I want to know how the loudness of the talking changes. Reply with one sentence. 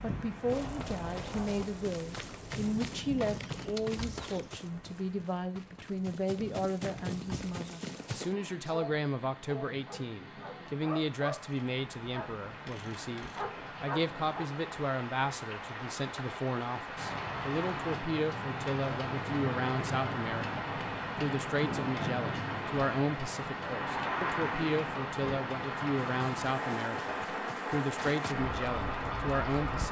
The loudness of the talking stays about the same.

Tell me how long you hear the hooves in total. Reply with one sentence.
You can hear the hooves for 12 seconds altogether.